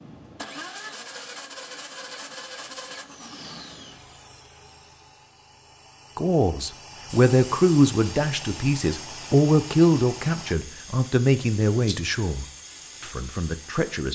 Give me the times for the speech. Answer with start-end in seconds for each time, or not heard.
6.2-14.0.